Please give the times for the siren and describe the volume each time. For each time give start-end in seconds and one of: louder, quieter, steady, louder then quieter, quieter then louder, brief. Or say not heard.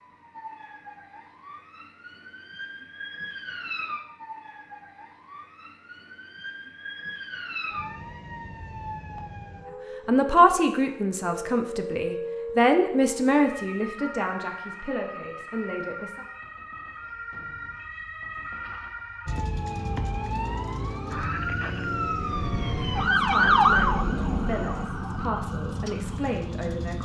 0.0-27.0 louder.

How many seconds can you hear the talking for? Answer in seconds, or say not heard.
10 s.